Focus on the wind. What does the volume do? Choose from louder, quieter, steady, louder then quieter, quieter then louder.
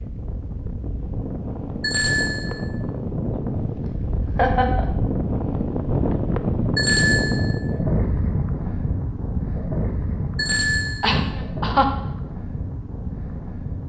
louder then quieter.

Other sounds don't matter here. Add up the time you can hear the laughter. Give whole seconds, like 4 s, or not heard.
2 s.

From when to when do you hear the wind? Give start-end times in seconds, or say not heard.
0.0-13.8.